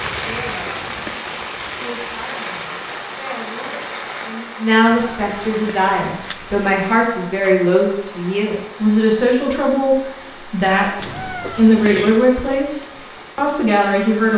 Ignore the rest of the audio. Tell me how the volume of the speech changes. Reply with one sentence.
The loudness of the speech goes up.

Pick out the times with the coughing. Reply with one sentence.
You can't hear the coughing here.